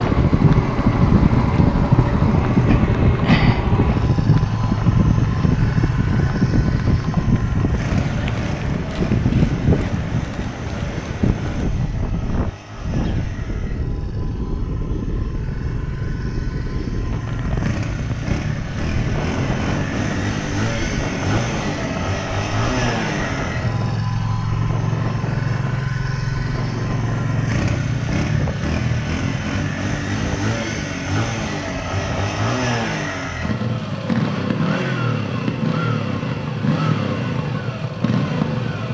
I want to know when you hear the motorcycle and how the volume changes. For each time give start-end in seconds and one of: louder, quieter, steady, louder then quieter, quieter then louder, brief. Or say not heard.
0.0-38.8 quieter then louder.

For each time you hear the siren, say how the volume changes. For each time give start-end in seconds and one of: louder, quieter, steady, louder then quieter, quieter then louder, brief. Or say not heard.
not heard.